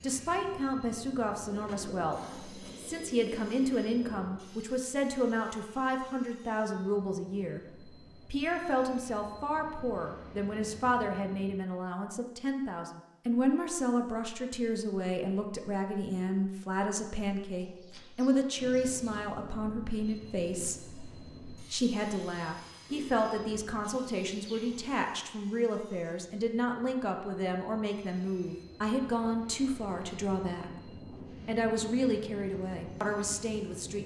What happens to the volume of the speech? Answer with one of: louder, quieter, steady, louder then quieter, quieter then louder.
steady.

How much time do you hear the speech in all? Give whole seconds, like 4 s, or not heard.
34 s.